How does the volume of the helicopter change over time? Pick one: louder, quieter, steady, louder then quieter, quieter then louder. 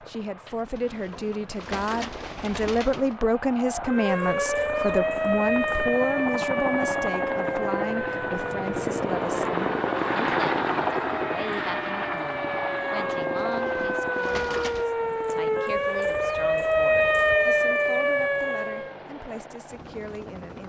louder then quieter.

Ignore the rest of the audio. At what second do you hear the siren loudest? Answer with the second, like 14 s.
17 s.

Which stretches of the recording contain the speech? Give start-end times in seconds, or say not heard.
0.0-20.6.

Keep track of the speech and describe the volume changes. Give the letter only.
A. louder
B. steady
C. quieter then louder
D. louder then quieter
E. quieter
E.